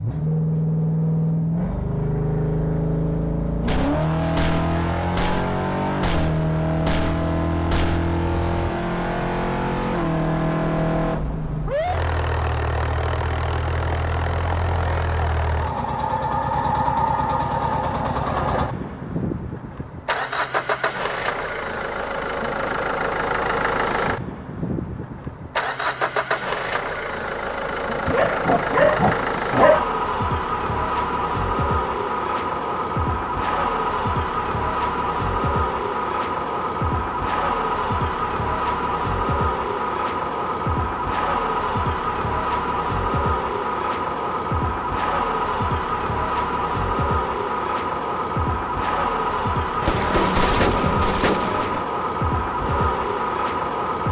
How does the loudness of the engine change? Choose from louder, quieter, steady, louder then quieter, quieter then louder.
steady.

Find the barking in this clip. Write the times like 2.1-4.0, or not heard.
28.1-29.9.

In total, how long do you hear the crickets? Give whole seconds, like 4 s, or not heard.
not heard.